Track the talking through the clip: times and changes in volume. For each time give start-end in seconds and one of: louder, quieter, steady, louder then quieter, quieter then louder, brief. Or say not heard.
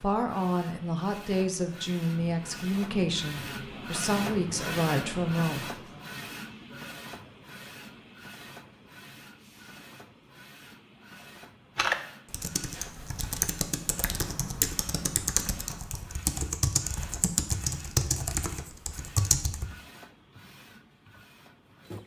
0.0-5.7 steady.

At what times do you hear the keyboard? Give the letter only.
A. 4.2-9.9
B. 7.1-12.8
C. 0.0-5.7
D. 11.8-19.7
D.